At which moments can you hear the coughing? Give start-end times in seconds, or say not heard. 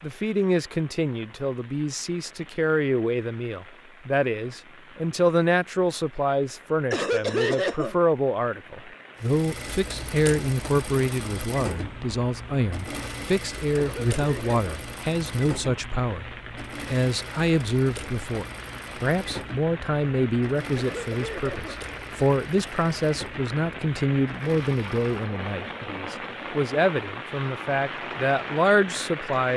6.9-8.0, 13.8-14.6, 20.8-21.8.